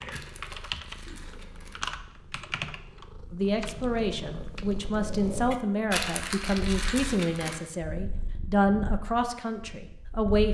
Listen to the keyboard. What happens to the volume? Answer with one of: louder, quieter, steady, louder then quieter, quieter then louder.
quieter.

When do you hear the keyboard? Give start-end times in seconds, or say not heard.
0.0-4.8.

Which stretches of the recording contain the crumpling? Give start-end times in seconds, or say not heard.
0.1-1.9, 5.9-7.6.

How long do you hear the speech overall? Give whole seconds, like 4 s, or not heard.
7 s.